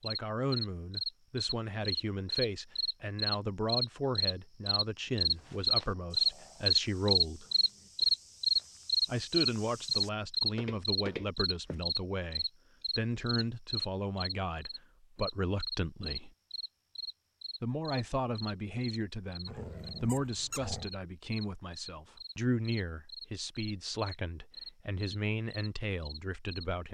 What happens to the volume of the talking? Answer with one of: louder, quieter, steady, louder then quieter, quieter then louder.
steady.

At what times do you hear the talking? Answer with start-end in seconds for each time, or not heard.
0.0-7.5, 9.1-16.3, 17.6-26.8.